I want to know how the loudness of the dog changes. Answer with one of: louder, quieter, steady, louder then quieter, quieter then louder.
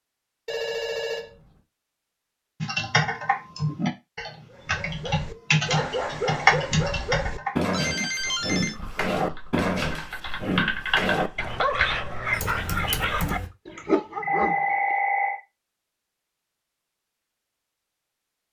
steady.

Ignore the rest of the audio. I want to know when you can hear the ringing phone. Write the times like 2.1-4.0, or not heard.
0.5-1.5, 7.7-8.8, 13.8-15.4.